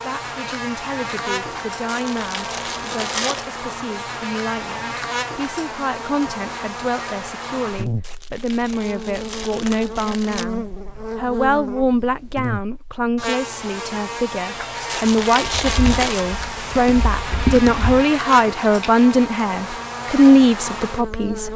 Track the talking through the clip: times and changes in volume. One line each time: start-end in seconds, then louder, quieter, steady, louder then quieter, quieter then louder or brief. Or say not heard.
0.0-21.5 louder.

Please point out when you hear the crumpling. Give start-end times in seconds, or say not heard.
1.9-3.5, 8.0-10.4, 14.8-16.2.